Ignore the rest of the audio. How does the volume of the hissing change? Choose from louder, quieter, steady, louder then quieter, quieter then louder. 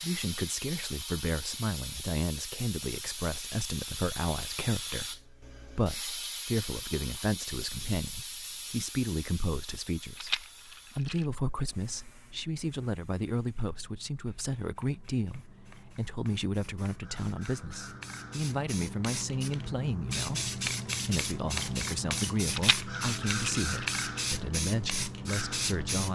quieter then louder.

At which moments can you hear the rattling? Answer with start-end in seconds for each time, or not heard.
10.2-11.2, 22.5-24.2.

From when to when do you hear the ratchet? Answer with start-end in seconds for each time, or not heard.
not heard.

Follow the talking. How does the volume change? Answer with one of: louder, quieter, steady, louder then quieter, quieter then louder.
steady.